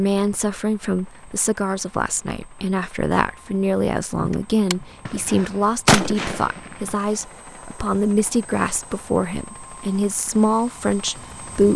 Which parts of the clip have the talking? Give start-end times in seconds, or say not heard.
0.0-11.7.